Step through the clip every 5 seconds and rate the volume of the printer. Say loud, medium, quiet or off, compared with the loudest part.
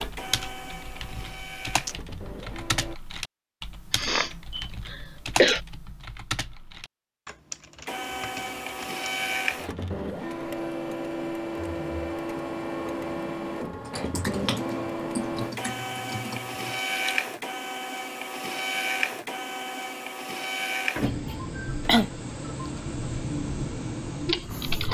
medium, loud, loud, loud, loud.